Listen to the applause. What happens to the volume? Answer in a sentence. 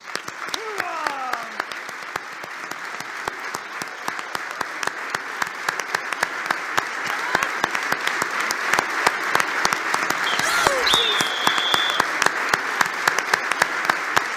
The volume of the applause goes up.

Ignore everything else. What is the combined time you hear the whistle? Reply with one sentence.
The whistle can be heard for 2 seconds in total.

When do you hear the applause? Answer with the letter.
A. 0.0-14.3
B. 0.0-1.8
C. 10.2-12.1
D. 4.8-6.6
A.